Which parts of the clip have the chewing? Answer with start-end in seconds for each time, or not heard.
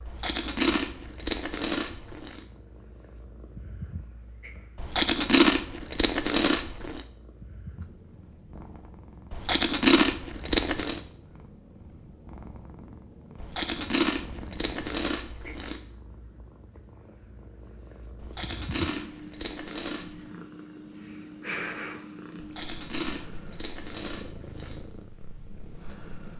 0.1-2.4, 4.8-7.0, 9.3-11.0, 13.4-15.8, 18.2-20.1, 22.4-24.8.